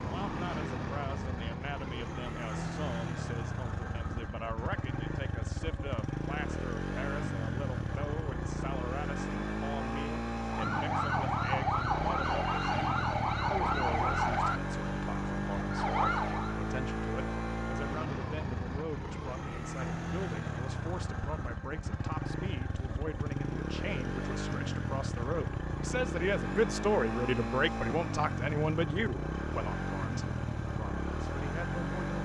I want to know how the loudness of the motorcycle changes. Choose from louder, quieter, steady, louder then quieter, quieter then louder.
steady.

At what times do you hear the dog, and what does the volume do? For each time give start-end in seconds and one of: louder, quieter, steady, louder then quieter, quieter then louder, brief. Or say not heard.
not heard.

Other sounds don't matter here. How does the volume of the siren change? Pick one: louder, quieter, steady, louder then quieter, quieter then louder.
steady.